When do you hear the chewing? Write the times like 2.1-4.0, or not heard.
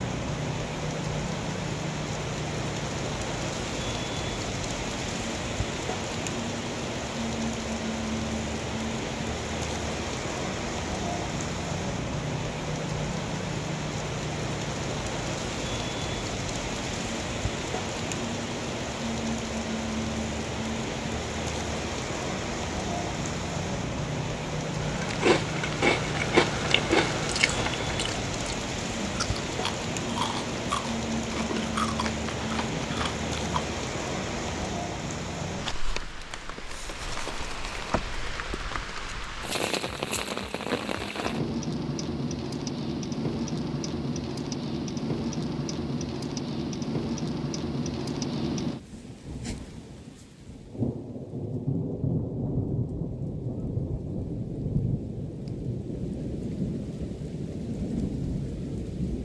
24.8-33.6.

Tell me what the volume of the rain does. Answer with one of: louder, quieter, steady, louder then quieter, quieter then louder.
steady.